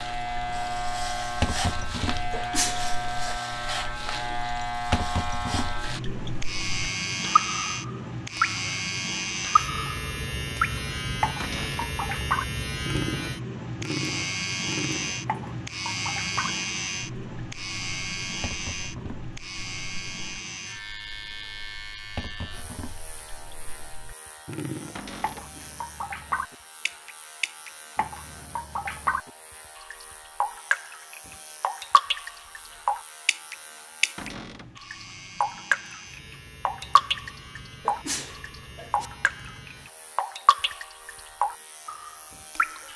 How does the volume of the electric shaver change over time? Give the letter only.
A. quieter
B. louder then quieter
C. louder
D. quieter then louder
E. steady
A.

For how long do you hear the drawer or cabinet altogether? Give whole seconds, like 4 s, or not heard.
2 s.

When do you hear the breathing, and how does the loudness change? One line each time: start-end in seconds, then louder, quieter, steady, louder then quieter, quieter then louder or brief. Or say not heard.
not heard.